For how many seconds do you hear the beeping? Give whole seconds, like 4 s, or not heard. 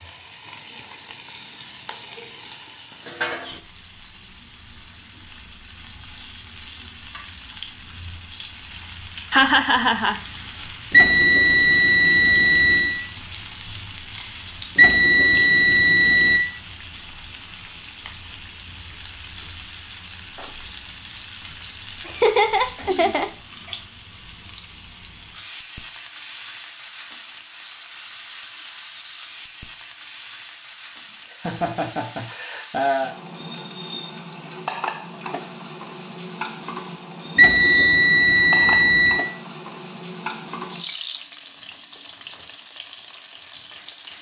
6 s.